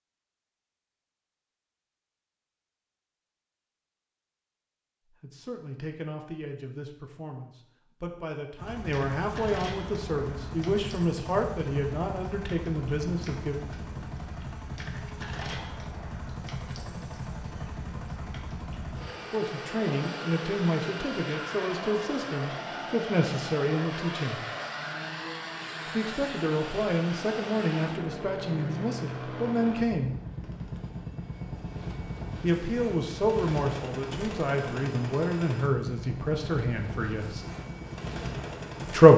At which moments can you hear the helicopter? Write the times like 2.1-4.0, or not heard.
8.6-39.1.